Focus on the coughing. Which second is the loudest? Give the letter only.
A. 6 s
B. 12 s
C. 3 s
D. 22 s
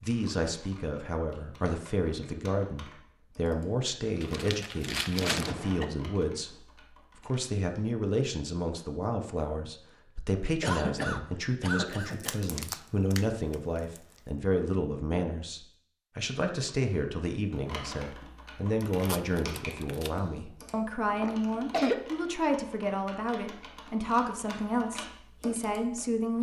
D.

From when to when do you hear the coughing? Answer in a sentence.
The coughing can be heard from 5.2 to 5.8 s, from 10.6 to 12.4 s and from 21.2 to 22.0 s.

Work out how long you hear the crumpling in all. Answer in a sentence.
The crumpling can be heard for 5 seconds in total.